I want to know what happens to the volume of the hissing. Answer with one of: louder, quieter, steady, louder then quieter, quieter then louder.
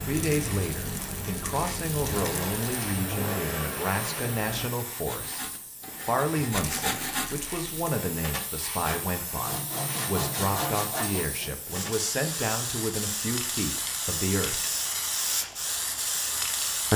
louder.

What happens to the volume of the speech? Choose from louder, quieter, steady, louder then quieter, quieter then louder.
steady.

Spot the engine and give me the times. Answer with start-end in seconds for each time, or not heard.
0.0-4.7.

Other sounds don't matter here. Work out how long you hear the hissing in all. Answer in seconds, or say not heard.
17 s.